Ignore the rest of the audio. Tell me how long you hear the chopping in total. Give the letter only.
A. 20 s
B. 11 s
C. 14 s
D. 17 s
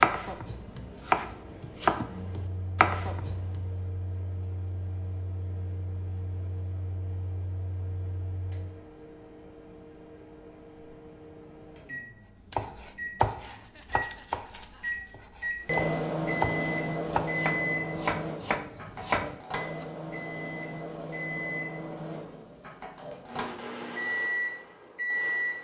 B.